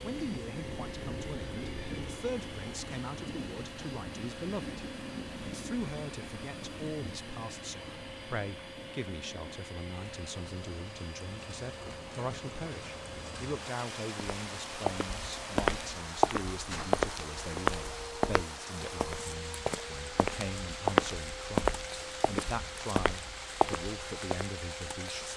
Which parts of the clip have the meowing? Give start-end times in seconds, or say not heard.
0.6-2.1.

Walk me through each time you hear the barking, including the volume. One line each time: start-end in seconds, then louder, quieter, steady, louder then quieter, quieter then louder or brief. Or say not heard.
not heard.